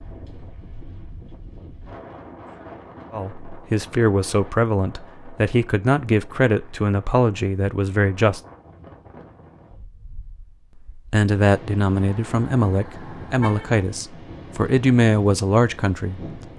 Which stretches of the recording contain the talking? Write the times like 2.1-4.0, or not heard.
3.1-8.4, 11.1-16.2.